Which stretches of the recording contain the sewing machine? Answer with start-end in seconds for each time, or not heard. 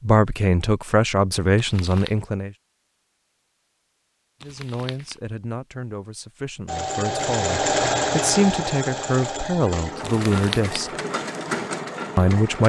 6.7-12.6.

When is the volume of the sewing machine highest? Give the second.
8 s.